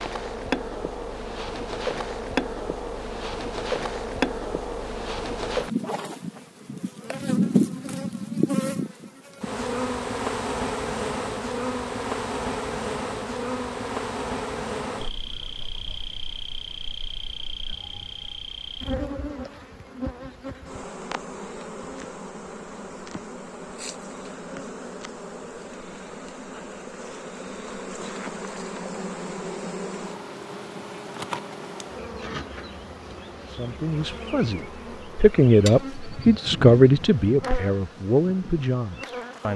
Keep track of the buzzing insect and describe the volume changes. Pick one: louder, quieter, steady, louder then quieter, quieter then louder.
quieter.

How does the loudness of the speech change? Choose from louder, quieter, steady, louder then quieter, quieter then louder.
louder then quieter.